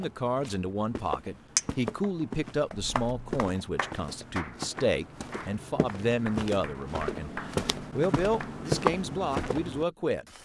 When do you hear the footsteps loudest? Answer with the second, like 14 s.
9 s.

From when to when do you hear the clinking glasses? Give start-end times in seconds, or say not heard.
1.6-2.2.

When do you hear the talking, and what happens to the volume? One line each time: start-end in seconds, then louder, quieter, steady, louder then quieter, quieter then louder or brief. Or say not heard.
0.0-10.2 steady.